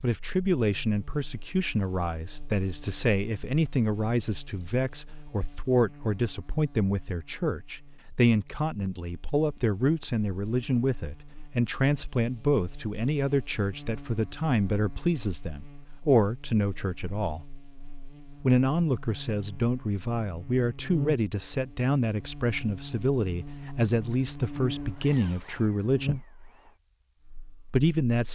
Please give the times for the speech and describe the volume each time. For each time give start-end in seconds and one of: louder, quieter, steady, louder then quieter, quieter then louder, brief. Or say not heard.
0.0-17.4 steady
18.4-26.2 steady
27.7-28.3 brief.